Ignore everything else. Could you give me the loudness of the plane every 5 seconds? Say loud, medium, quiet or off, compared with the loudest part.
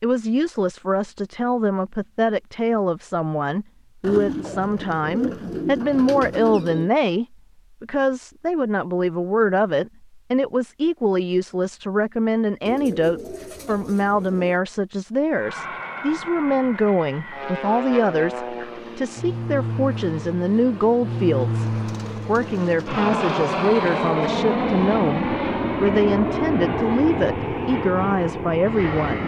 off, off, off, medium, loud, loud.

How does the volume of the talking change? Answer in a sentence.
The loudness of the talking stays about the same.